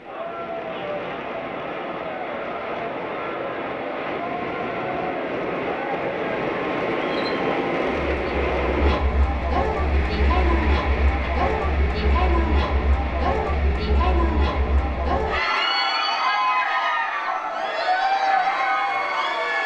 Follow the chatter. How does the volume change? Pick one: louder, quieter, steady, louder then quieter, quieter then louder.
louder.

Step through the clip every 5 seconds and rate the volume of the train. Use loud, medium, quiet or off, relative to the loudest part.
medium, loud, medium, quiet.